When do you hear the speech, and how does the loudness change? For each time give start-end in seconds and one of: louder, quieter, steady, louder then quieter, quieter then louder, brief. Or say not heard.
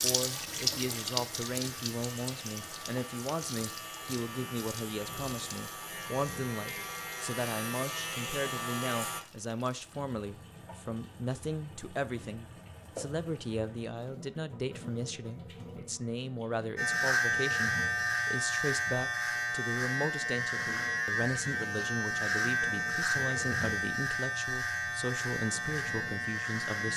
0.0-26.9 steady.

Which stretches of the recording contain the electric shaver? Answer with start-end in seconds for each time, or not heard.
0.2-9.2, 16.8-26.9.